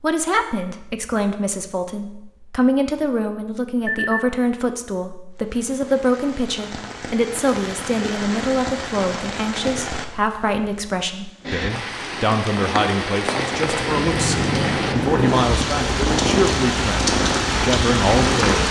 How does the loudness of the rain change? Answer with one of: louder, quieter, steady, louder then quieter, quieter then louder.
louder.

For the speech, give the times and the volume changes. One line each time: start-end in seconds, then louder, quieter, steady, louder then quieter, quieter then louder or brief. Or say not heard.
0.0-18.6 steady.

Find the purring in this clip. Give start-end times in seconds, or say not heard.
13.7-18.6.